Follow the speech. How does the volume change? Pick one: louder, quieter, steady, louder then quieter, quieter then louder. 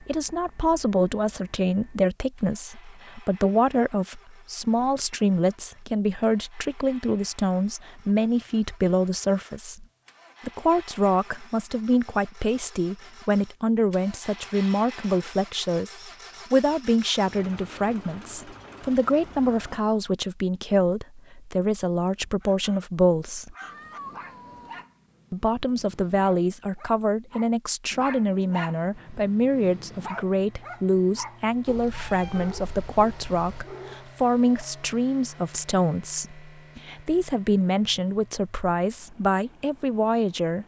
steady.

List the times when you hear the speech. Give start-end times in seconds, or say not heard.
0.0-9.8, 10.4-23.6, 25.3-40.6.